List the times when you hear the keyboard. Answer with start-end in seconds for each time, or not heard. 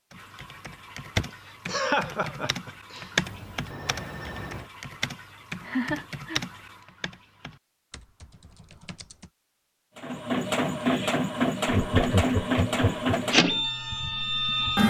0.1-9.3.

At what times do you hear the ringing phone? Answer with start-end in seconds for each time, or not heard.
3.2-4.7.